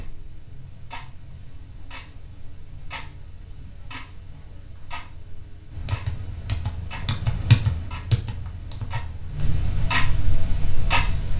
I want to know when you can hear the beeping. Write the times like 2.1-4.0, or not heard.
not heard.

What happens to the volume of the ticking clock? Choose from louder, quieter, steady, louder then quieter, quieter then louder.
louder.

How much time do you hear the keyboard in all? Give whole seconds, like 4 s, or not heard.
4 s.